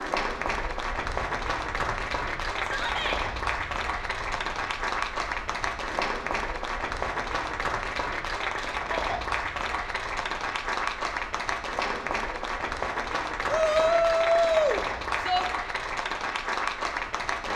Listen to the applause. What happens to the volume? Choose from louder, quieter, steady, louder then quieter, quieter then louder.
steady.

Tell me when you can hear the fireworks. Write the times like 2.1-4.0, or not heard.
not heard.